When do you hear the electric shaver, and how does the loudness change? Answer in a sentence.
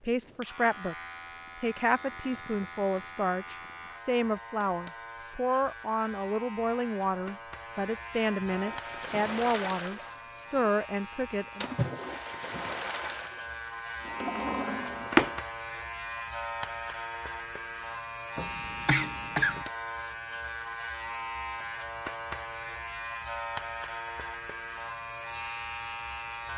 You can hear the electric shaver from 0.0 to 26.5 s, getting louder.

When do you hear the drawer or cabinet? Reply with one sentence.
You can hear the drawer or cabinet from 14.1 to 15.4 s.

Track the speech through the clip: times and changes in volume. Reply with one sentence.
You can hear the speech from 0.0 to 11.7 s, at a steady volume.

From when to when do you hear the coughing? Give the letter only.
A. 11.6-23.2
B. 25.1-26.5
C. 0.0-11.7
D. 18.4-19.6
D.